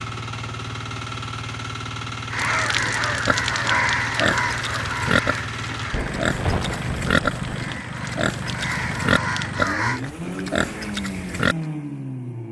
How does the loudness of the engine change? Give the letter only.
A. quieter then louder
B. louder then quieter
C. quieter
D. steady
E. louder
D.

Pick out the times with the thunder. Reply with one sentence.
The thunder can be heard from 5.9 to 7.7 s.